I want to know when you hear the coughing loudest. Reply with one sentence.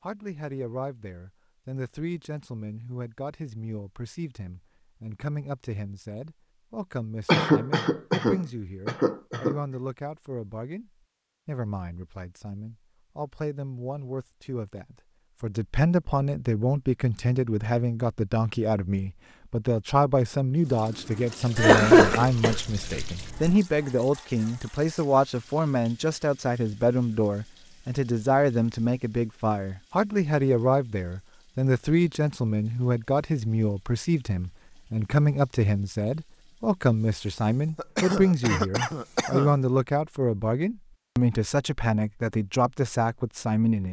The volume of the coughing peaks at 22 seconds.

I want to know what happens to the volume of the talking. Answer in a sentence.
The loudness of the talking goes up.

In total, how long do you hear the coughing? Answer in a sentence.
The coughing can be heard for 6 seconds in total.